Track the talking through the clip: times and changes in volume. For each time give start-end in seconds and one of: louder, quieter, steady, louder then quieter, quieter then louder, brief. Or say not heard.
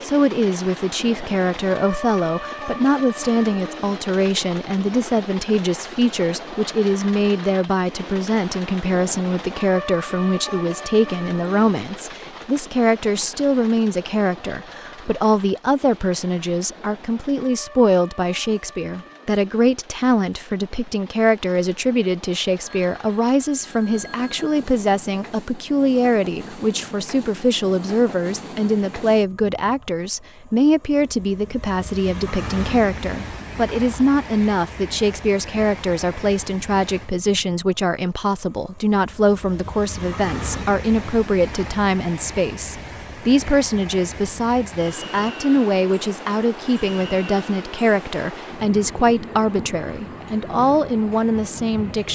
0.0-52.1 steady.